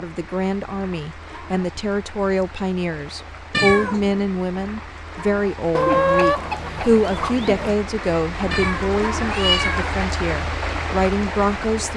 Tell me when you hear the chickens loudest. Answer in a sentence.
The volume of the chickens peaks at 6 seconds.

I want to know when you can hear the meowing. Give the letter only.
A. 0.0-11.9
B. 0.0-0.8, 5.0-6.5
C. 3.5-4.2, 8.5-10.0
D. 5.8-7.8
C.